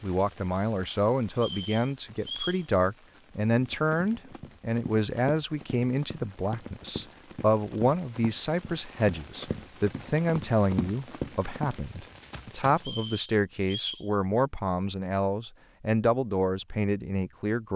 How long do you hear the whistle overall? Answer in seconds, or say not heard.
3 s.